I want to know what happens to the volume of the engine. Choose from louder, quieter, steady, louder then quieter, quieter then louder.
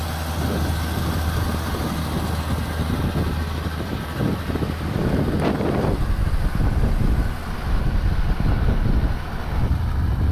quieter.